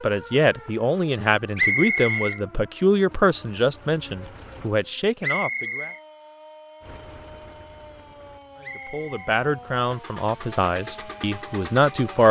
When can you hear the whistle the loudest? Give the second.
2 s.